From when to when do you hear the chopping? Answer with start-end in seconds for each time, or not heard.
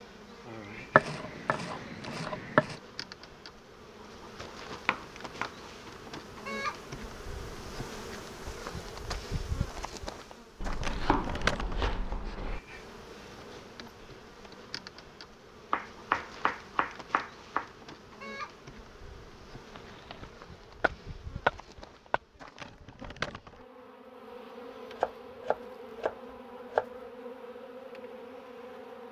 0.9-2.8, 4.8-5.5, 10.6-12.6, 15.7-17.7, 19.8-22.2, 24.9-26.9.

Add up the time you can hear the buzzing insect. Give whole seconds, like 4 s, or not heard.
29 s.